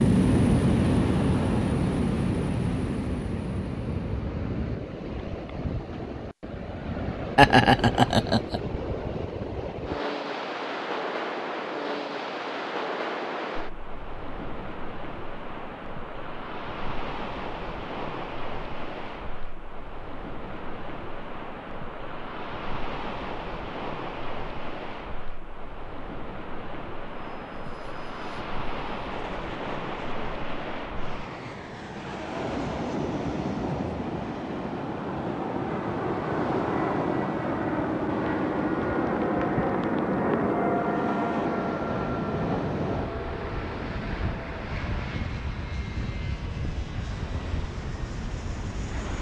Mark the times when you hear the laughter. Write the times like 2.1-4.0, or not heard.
7.3-8.6.